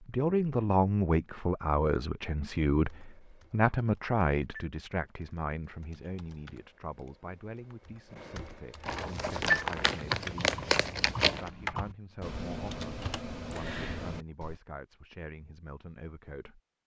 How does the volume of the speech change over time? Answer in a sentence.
The loudness of the speech goes down.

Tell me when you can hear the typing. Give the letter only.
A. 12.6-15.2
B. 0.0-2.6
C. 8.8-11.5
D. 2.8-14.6
D.